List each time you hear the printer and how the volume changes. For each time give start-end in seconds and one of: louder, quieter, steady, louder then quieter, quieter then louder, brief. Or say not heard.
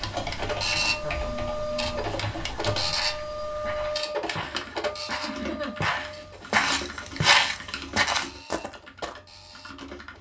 0.0-10.1 quieter.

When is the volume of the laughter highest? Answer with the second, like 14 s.
6 s.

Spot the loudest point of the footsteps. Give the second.
7 s.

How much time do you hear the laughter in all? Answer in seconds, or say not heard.
2 s.